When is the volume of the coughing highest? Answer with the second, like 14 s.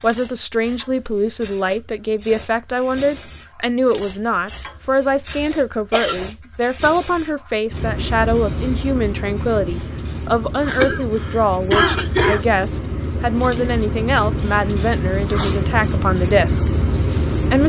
12 s.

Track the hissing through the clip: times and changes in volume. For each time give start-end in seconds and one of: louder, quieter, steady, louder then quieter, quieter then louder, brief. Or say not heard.
0.0-17.6 louder.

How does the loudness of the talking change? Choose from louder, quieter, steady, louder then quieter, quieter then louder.
steady.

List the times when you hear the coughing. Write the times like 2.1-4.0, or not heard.
5.3-6.2, 10.8-12.4.